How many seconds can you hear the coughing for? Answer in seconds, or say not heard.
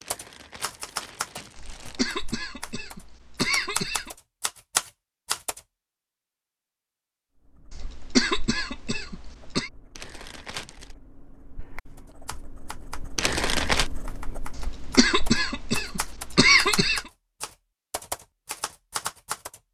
7 s.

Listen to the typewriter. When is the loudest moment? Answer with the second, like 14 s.
5 s.